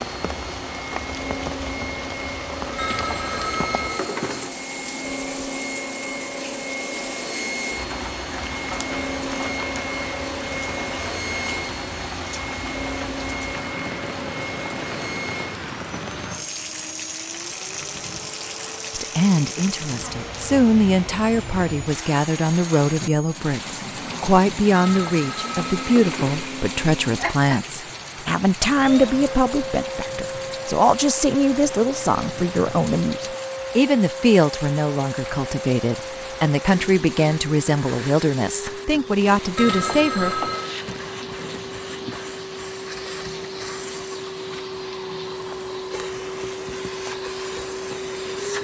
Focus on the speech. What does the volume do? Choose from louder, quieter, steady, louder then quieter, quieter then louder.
steady.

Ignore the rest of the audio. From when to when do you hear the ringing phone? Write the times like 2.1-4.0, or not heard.
2.8-4.5, 24.7-26.4, 39.5-40.8.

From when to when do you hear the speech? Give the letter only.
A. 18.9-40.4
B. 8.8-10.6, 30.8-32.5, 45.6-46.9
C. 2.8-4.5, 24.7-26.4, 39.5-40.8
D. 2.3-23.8
A.